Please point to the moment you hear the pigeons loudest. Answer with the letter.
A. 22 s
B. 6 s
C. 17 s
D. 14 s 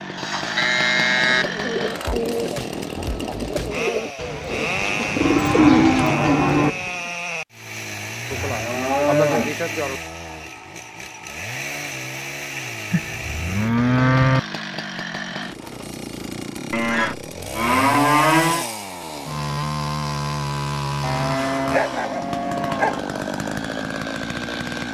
B.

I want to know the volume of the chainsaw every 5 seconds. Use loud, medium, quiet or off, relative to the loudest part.
loud, loud, medium, loud, loud.